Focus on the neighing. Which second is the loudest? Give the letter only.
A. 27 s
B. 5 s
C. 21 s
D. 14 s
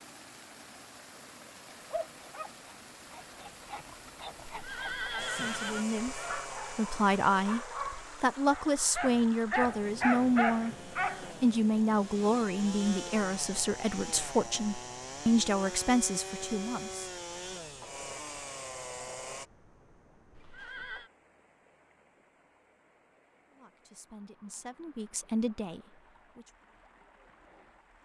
B.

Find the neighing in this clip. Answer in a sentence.
You can hear the neighing from 4.5 to 5.8 s and from 20.3 to 21.1 s.